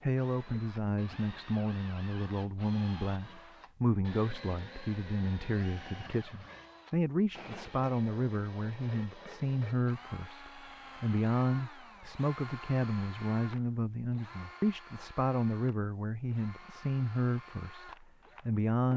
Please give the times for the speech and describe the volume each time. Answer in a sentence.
The speech can be heard from 0.0 to 18.9 s, at a steady volume.